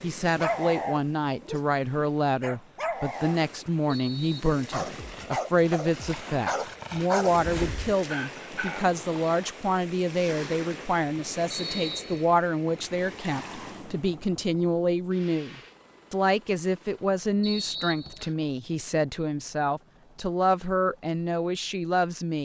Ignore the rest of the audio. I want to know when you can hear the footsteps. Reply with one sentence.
You can't hear the footsteps here.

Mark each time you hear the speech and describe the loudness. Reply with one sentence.
You can hear the speech from 0.0 to 22.3 s, at a steady volume.